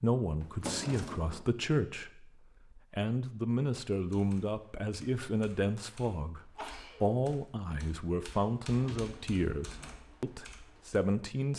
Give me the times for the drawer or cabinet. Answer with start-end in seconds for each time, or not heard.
0.4-1.5, 8.7-9.9.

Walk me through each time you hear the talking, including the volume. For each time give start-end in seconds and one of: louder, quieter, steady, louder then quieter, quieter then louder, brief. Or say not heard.
0.0-11.5 steady.